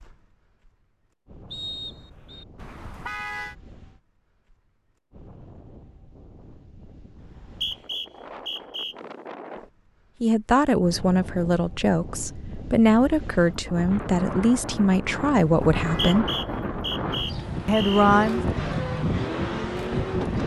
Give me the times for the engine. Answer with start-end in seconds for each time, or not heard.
17.5-20.4.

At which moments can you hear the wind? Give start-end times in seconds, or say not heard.
0.0-20.4.